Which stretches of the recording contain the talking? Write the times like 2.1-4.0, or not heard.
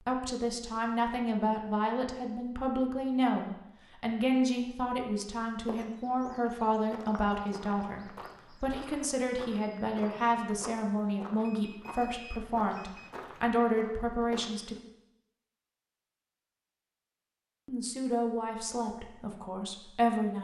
0.1-14.8, 17.6-20.3.